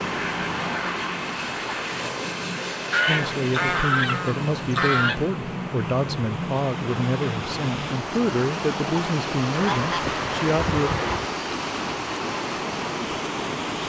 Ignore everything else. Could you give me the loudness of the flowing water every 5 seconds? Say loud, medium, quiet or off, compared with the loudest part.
medium, loud, loud.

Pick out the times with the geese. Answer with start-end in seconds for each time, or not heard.
2.9-5.2, 9.6-11.3.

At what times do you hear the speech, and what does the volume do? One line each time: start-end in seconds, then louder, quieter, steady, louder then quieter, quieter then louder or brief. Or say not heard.
3.0-10.9 steady.